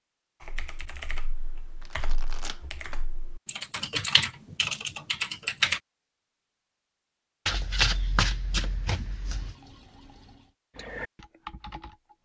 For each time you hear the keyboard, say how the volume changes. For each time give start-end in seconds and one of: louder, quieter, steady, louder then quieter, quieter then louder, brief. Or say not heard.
0.4-5.8 louder
10.8-12.2 brief.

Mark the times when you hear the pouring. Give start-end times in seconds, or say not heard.
9.2-10.6.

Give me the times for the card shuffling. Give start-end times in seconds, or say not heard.
1.8-2.6, 7.5-9.6.